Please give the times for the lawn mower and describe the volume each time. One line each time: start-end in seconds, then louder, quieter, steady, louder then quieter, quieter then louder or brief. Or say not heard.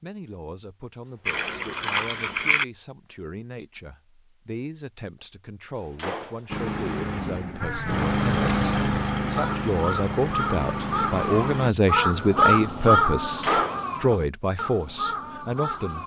6.5-11.8 louder then quieter.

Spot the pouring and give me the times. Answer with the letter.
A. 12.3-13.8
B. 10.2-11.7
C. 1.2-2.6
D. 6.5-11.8
C.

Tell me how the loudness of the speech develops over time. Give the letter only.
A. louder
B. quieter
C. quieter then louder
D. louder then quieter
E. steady
A.